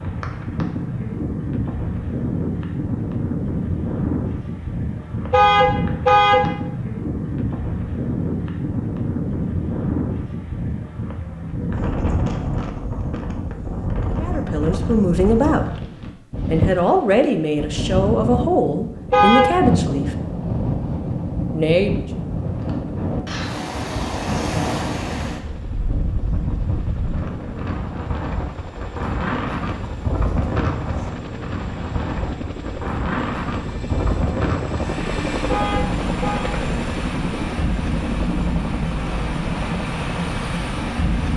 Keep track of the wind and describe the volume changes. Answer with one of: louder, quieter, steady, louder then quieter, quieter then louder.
steady.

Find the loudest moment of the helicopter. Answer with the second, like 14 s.
35 s.